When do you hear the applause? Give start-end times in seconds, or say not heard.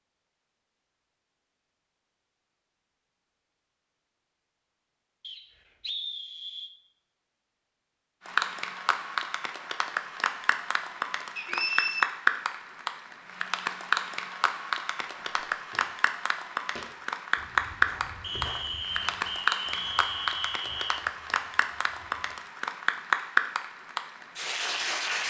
8.2-25.2.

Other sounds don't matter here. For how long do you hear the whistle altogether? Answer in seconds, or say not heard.
5 s.